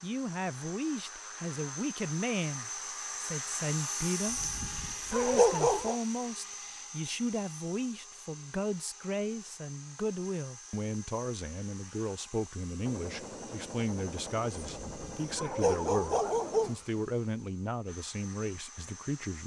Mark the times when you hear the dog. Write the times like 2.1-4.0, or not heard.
4.2-6.0, 14.7-16.8.